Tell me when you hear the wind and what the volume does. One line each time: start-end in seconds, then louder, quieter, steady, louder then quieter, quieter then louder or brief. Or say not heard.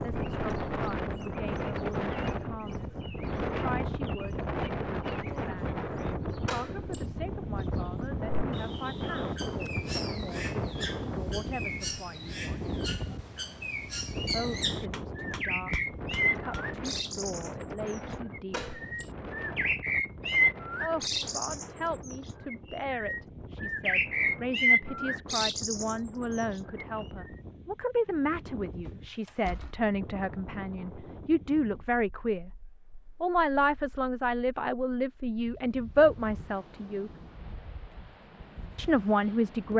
0.0-39.7 quieter.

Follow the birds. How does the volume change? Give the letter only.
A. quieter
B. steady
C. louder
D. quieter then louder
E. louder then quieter
C.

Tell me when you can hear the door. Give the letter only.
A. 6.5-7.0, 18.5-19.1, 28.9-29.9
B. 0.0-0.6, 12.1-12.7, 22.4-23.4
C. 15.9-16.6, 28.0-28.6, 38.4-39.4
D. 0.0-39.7
A.